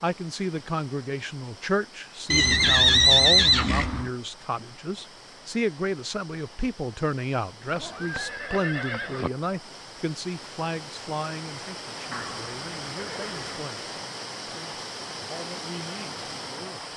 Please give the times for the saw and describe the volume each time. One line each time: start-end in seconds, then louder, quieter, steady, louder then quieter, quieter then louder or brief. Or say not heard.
not heard.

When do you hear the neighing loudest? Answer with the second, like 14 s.
3 s.